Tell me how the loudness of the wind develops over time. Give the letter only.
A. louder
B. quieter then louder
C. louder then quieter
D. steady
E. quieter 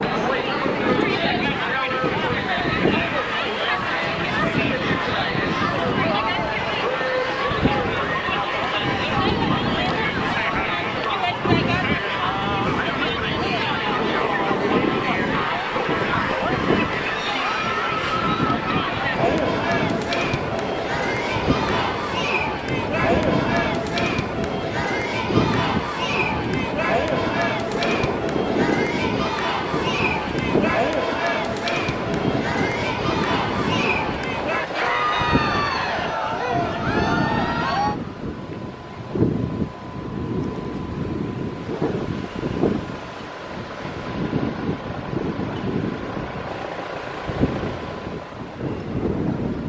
D.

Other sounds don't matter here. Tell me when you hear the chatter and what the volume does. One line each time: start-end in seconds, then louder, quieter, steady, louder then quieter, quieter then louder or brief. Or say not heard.
0.0-38.0 steady.